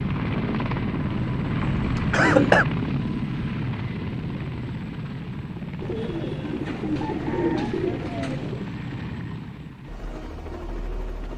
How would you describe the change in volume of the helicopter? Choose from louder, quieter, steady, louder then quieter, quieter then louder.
quieter.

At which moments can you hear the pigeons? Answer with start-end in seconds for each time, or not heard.
5.8-8.7.